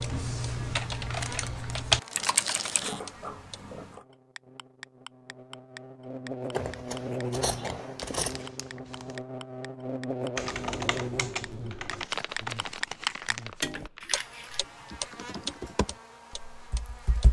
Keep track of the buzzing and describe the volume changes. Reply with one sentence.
The volume of the buzzing goes up, then down.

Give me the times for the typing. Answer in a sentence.
The typing can be heard from 0.0 to 3.0 s and from 10.3 to 17.2 s.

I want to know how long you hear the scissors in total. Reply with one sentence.
The scissors can be heard for 4 seconds in total.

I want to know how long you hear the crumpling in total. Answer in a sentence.
You can hear the crumpling for 5 seconds altogether.